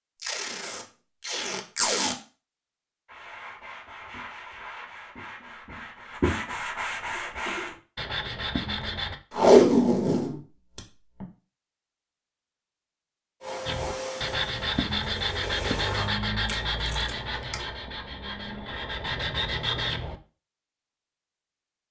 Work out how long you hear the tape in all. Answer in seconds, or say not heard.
5 s.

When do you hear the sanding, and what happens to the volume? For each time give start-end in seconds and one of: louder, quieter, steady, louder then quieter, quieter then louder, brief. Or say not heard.
3.0-9.2 louder
13.7-20.1 quieter then louder.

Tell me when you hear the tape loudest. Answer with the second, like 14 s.
10 s.